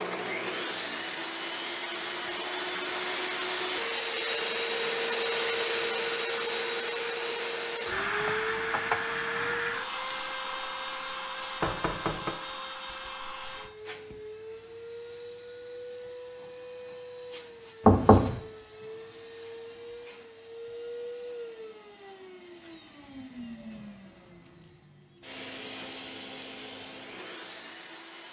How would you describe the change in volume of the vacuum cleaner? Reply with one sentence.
The loudness of the vacuum cleaner goes down.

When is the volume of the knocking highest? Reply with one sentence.
The loudest moment of the knocking is at 18 seconds.